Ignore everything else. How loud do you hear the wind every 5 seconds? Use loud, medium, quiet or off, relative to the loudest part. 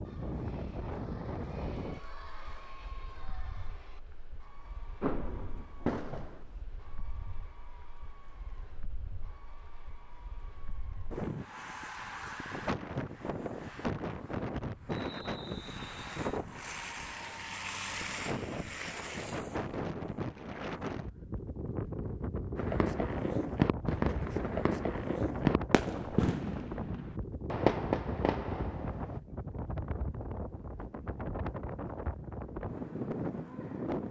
medium, quiet, loud, loud, loud, loud, loud.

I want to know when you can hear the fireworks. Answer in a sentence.
The fireworks can be heard from 5.0 to 6.4 s and from 22.6 to 29.1 s.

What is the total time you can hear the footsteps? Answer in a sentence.
You can't hear the footsteps here.